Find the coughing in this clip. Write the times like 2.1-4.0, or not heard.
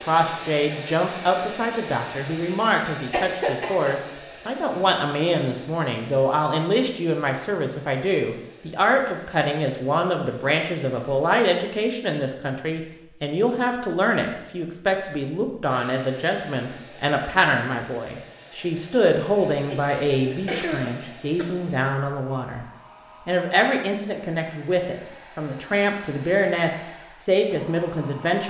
3.1-4.0, 19.6-21.6.